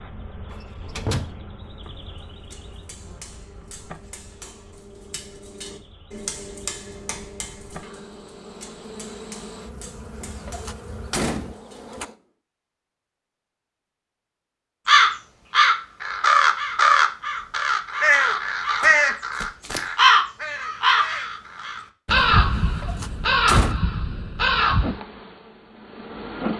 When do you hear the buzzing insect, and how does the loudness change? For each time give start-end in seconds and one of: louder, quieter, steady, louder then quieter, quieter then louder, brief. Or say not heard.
0.0-12.2 quieter then louder
24.7-26.5 brief.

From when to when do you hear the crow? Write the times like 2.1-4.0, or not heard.
14.8-24.9.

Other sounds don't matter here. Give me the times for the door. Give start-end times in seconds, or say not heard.
0.5-1.4, 10.2-12.1, 22.6-23.8.